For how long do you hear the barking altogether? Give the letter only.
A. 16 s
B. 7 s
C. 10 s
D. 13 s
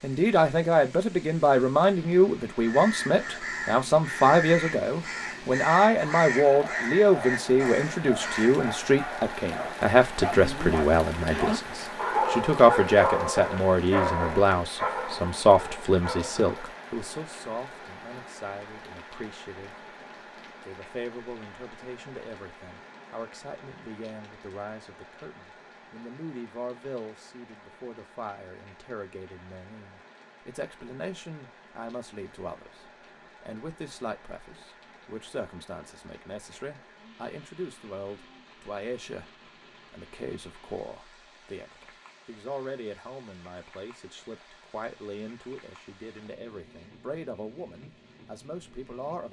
C.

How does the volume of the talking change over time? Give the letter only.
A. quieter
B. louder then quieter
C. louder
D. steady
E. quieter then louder
A.